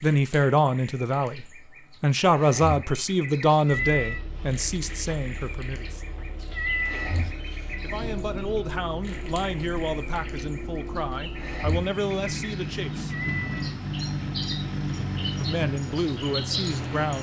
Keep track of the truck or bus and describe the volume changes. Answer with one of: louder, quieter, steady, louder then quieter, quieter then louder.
louder.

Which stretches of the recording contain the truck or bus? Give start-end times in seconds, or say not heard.
3.7-17.1.